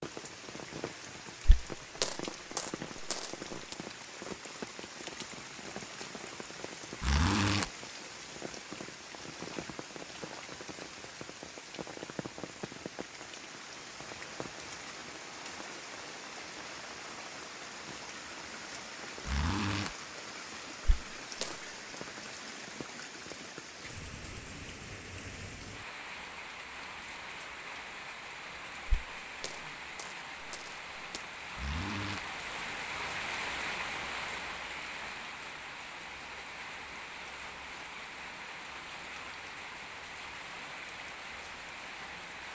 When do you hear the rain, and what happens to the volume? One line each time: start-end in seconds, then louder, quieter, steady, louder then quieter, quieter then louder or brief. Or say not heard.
0.0-42.5 steady.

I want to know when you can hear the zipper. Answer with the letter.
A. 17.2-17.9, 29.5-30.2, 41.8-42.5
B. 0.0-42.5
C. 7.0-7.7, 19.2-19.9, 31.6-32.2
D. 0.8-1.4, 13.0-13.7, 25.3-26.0
C.